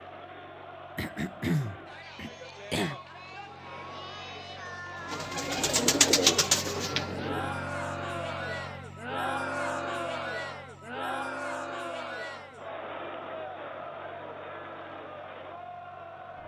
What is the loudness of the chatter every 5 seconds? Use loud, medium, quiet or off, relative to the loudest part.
medium, loud, loud, medium.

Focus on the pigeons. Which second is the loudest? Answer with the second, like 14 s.
6 s.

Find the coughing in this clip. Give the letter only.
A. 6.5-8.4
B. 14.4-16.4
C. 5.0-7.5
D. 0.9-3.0
D.